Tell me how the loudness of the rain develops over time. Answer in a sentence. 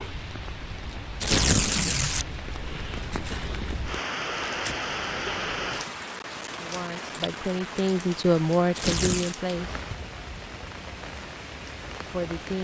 The volume of the rain goes up, then down.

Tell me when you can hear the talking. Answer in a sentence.
The talking can be heard from 6.5 to 9.8 s and from 12.1 to 12.5 s.